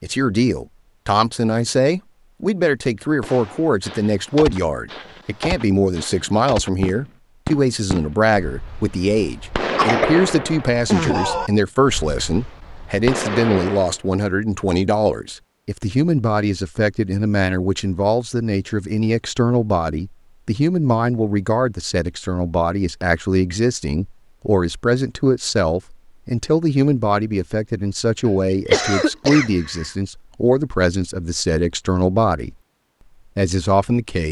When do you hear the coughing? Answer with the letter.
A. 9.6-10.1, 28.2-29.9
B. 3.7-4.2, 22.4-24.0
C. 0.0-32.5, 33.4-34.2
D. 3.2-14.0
A.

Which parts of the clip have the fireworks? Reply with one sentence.
You can hear the fireworks from 3.2 to 14.0 s.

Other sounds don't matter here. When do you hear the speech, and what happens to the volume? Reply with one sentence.
The speech can be heard from 0.0 to 32.5 s, at a steady volume; and briefly from 33.4 to 34.2 s.